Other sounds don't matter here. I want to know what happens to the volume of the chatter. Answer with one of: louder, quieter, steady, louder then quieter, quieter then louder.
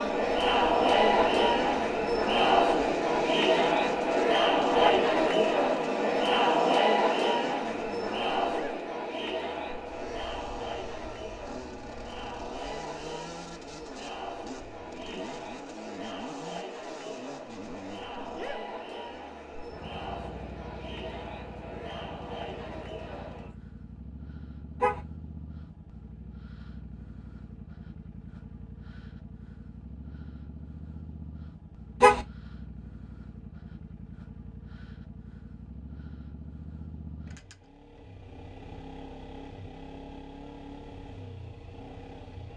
quieter.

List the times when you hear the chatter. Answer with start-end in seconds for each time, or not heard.
0.0-23.6.